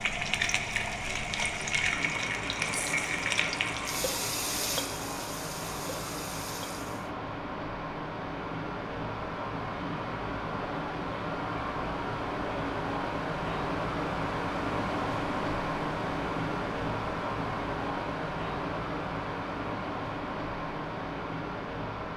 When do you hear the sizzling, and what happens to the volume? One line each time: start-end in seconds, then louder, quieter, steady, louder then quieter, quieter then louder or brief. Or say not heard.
0.0-7.1 quieter.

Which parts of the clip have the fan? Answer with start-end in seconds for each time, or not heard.
0.0-22.1.